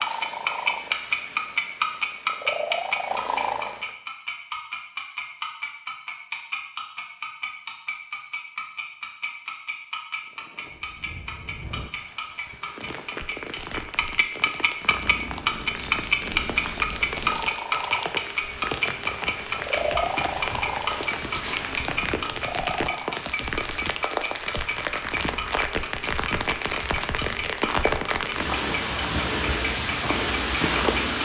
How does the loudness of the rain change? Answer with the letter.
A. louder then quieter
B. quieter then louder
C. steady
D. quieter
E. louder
E.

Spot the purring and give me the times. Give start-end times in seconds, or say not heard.
0.0-3.9, 14.8-23.1.